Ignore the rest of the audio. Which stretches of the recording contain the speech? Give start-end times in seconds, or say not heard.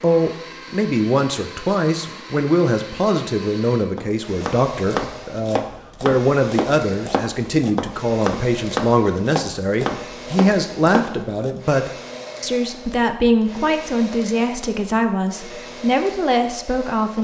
0.0-17.1.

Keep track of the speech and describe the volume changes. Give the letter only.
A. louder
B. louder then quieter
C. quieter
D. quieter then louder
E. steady
E.